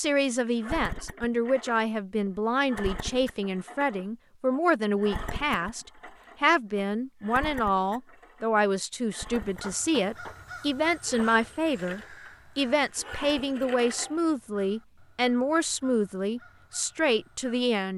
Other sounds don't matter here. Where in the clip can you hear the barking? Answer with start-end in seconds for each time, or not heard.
not heard.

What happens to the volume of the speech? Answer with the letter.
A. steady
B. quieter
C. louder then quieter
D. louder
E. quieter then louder
A.